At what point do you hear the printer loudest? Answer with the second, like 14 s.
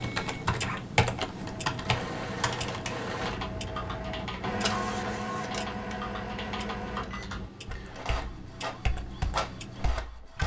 5 s.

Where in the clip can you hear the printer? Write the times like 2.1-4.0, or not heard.
0.2-10.4.